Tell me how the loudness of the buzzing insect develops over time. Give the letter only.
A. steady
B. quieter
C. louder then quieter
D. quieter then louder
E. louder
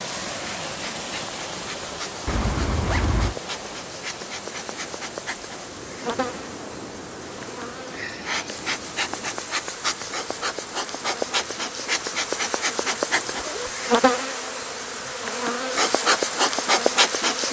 E.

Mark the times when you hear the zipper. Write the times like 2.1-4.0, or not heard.
2.2-3.4, 13.2-13.7.